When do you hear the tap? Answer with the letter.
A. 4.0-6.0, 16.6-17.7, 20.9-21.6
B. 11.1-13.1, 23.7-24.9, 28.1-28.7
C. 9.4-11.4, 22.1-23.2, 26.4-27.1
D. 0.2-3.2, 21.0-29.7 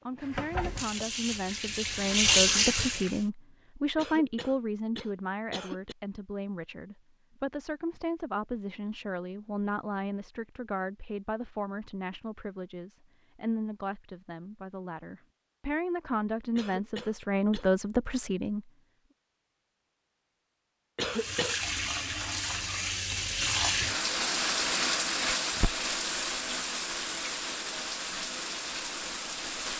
D.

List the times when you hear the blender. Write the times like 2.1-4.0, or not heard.
not heard.